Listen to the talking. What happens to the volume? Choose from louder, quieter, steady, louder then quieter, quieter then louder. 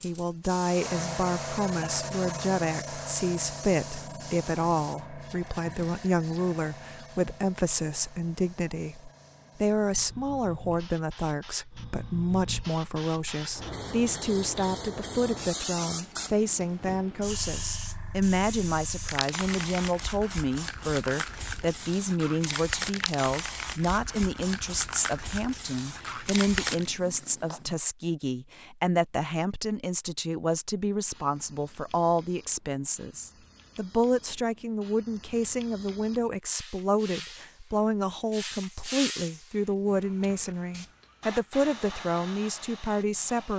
steady.